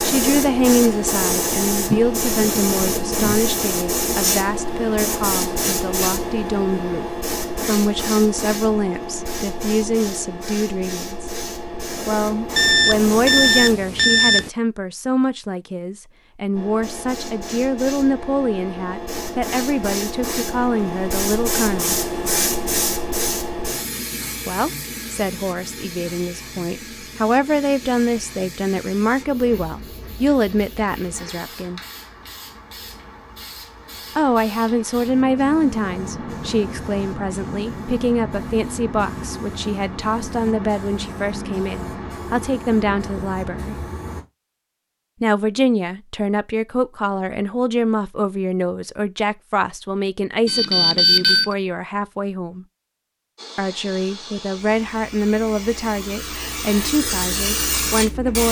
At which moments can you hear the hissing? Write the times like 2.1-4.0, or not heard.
0.0-13.8, 16.6-44.2, 53.4-58.4.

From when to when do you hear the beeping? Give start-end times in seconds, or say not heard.
12.6-14.5, 50.5-51.5.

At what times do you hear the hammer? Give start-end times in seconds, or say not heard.
not heard.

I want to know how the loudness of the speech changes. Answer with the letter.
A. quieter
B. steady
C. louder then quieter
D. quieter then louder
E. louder
B.